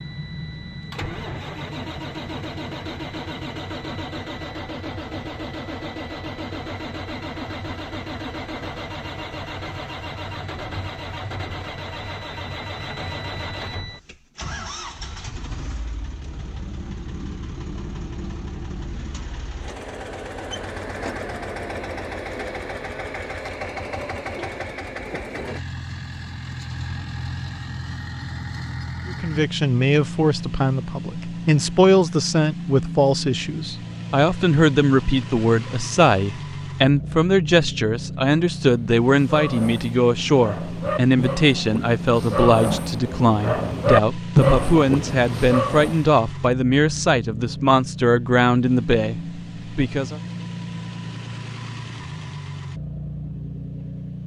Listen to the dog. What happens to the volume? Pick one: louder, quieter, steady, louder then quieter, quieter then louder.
louder.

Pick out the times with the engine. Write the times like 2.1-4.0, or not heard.
0.0-54.2.